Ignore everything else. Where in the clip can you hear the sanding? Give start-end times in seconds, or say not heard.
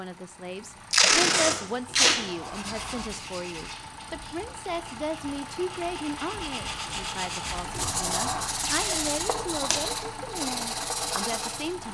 2.4-11.8.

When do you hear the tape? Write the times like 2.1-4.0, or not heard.
0.9-2.2, 8.6-9.8.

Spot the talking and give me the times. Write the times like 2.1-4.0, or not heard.
0.0-11.8.